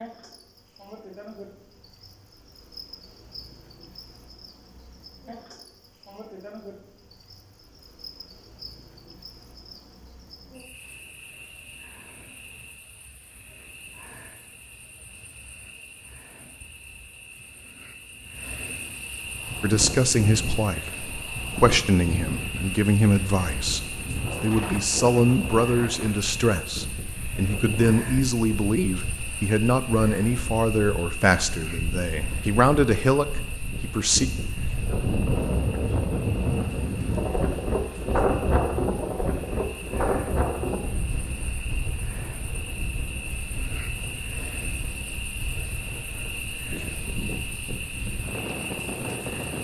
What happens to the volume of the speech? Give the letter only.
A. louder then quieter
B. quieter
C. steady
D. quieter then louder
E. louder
C.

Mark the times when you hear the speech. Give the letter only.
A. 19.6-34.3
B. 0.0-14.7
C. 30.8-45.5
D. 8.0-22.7
A.